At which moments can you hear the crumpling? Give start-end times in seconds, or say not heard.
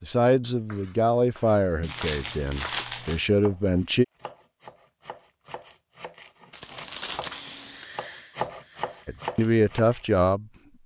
1.8-3.2, 6.5-7.4.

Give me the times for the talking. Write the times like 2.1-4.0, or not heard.
0.0-4.0, 9.1-10.4.